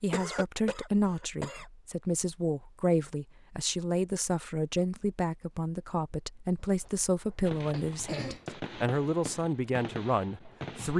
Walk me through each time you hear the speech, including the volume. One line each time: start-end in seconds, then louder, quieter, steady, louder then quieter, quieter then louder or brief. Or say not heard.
0.0-10.9 steady.